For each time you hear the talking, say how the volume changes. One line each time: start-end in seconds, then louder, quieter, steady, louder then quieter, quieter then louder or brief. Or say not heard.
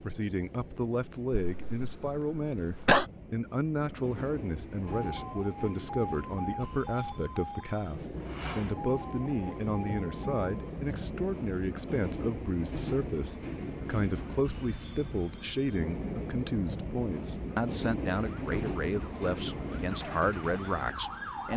0.0-21.5 steady.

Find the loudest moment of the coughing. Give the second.
3 s.